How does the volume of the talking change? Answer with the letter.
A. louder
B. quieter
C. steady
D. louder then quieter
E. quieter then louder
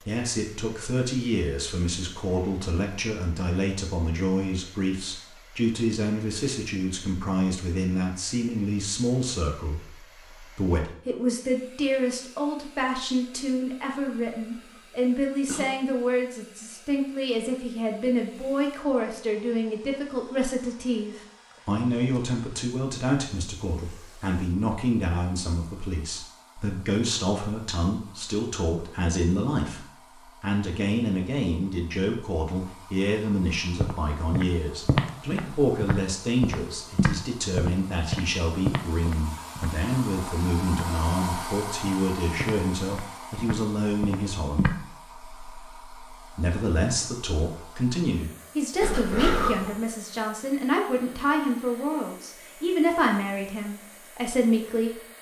C.